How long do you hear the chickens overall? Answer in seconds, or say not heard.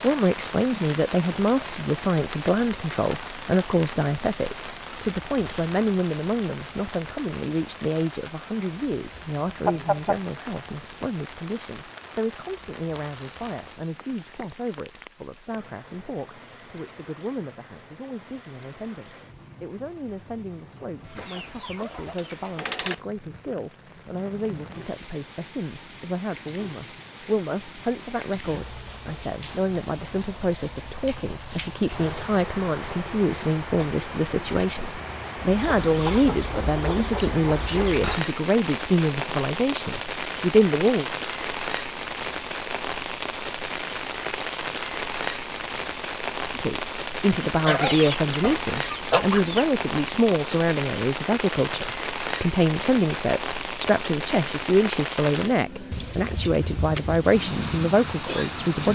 7 s.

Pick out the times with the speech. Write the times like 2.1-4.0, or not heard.
0.0-41.0, 46.5-58.8.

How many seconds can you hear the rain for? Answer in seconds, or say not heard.
59 s.